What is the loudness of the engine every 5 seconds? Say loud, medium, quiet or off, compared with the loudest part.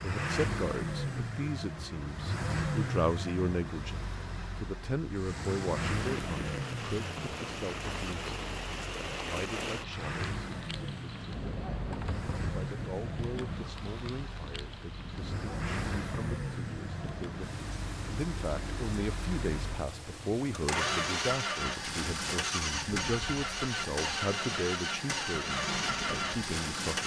loud, medium, medium, medium, loud, loud.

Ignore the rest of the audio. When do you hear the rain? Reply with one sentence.
You can hear the rain from 5.1 to 26.9 s.